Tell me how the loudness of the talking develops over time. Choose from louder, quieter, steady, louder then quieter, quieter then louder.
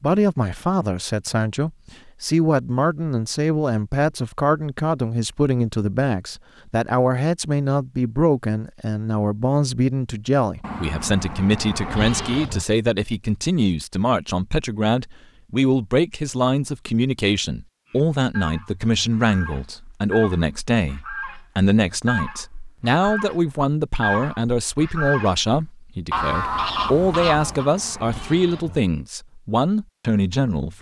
steady.